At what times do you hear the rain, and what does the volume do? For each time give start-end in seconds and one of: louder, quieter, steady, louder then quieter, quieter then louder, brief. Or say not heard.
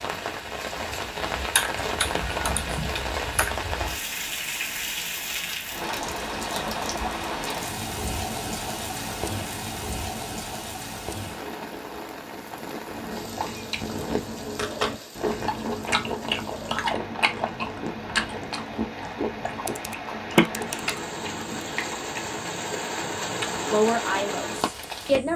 0.0-25.3 quieter then louder.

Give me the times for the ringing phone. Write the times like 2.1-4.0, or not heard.
20.4-20.8.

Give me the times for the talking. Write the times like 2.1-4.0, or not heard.
23.7-25.3.